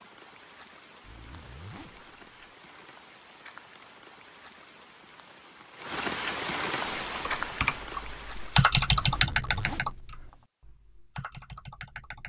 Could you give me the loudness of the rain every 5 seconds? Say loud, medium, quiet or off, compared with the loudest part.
quiet, loud, off.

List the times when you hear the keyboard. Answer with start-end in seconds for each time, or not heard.
7.1-12.2.